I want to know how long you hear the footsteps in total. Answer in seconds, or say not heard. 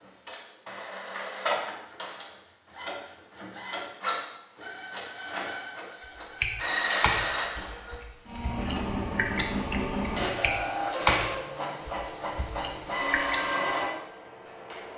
not heard.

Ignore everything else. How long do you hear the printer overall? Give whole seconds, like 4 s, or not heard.
15 s.